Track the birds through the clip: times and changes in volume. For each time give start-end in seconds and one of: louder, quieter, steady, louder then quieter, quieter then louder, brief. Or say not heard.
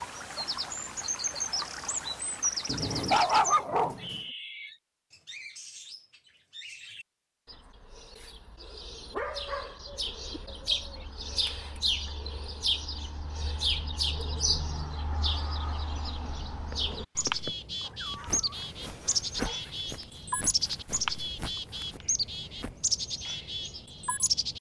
0.0-24.5 quieter then louder.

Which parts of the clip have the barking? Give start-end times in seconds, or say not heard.
2.6-4.2, 9.0-10.4, 17.8-19.7.